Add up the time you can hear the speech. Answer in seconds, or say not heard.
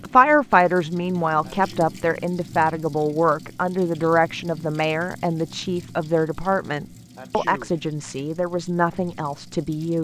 10 s.